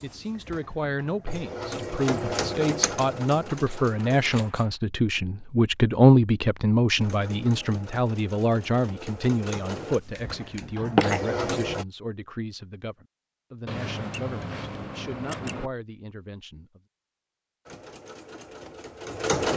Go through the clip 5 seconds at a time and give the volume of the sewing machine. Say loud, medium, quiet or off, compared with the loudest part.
loud, medium, loud, loud.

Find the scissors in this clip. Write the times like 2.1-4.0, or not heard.
3.6-4.7, 10.2-11.2, 13.7-15.7.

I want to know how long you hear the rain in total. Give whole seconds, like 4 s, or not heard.
not heard.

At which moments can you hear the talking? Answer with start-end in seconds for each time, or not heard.
0.0-16.8.